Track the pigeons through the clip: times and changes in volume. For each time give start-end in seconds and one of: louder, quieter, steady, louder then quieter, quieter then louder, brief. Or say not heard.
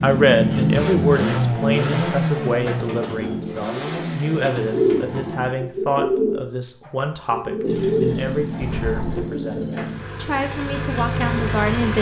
3.1-9.9 louder then quieter.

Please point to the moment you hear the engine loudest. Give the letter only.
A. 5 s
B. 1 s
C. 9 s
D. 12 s
B.